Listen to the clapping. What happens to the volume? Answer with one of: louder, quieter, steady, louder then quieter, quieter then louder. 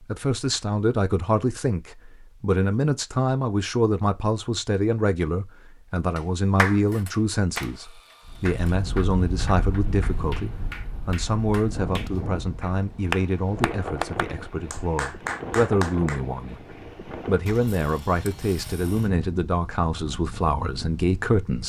quieter then louder.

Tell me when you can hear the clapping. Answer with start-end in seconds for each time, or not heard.
6.2-16.2.